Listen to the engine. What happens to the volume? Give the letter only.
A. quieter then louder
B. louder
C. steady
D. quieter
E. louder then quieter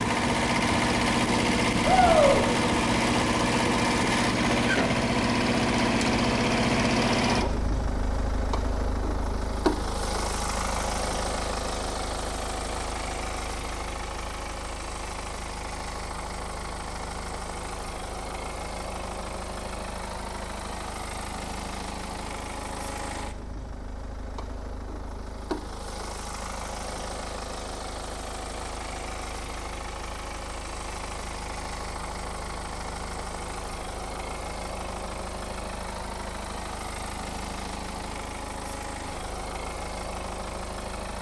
D.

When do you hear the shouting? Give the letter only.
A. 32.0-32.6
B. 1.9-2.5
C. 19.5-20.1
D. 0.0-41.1
B.